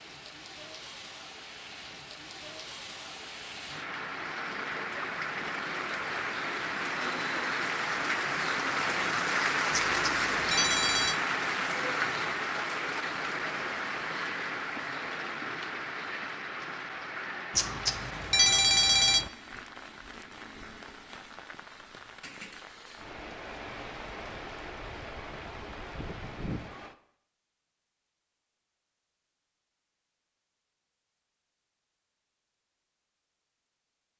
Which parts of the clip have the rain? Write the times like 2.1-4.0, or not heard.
0.0-26.9.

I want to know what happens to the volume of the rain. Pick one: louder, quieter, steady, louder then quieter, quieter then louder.
louder then quieter.